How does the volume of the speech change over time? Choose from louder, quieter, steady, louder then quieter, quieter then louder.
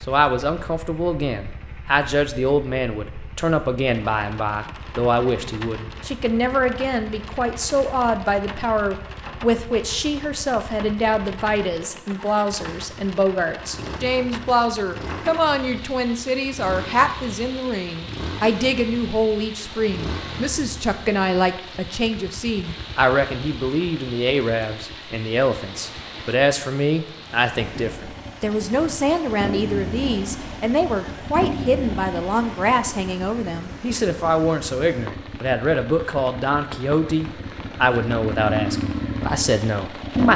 steady.